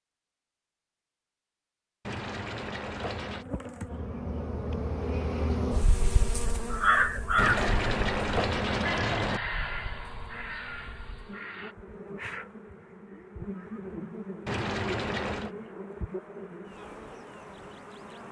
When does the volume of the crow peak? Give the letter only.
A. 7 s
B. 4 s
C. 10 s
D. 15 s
A.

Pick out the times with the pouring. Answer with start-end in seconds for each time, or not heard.
2.0-3.5, 7.3-9.4, 14.4-15.5.